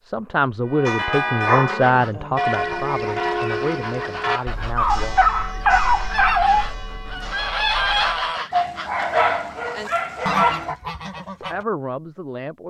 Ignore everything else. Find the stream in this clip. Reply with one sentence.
The stream can't be heard in this clip.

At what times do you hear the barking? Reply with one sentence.
You can hear the barking from 0.8 to 2.4 s, from 4.8 to 6.7 s and from 8.5 to 10.8 s.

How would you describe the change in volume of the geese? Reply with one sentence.
The loudness of the geese goes up.